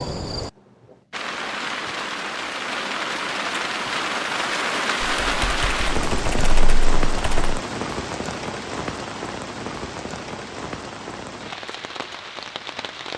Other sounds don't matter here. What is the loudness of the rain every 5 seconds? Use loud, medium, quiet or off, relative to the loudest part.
loud, loud, medium.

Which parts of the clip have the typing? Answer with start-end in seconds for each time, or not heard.
5.0-7.6.